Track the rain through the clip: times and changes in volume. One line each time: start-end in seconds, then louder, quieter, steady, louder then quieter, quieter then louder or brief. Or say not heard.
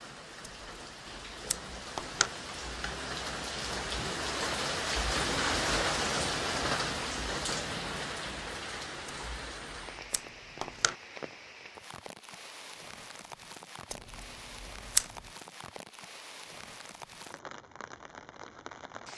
0.0-19.1 louder then quieter.